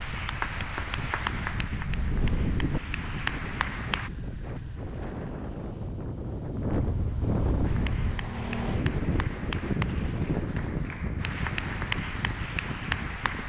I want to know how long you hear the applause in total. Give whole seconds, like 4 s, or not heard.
10 s.